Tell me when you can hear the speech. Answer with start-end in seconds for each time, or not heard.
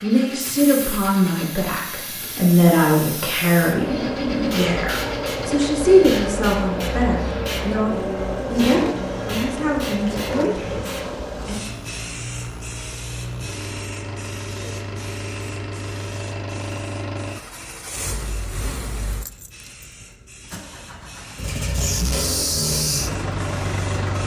0.0-11.6.